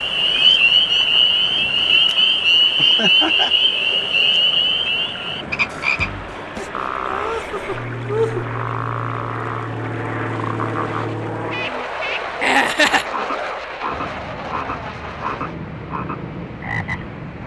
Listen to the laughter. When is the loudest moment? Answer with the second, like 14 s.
13 s.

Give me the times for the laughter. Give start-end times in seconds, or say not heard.
2.8-3.5, 6.5-8.5, 12.4-13.1.